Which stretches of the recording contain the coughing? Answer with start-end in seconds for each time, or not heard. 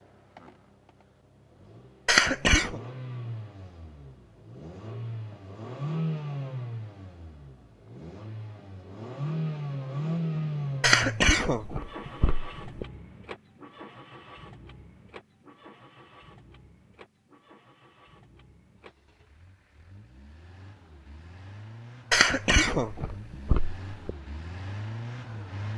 2.0-2.8, 10.8-12.8, 22.1-24.1.